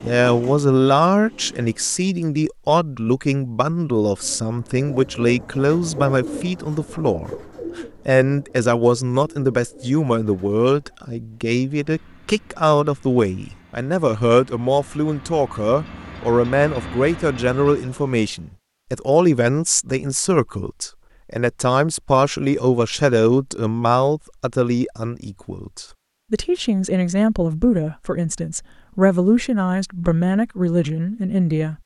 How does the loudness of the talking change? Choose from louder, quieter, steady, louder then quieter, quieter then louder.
steady.